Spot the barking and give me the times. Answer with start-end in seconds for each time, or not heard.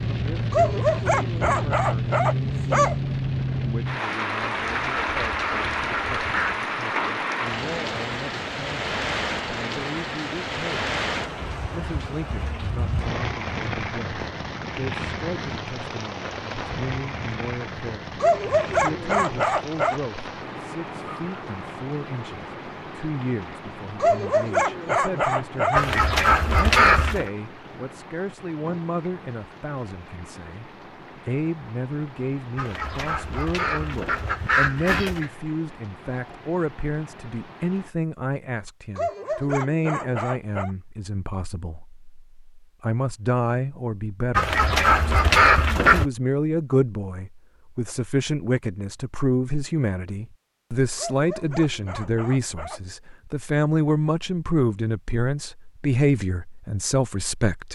0.5-3.0, 18.2-20.0, 24.0-25.9, 39.0-40.7, 51.0-52.9.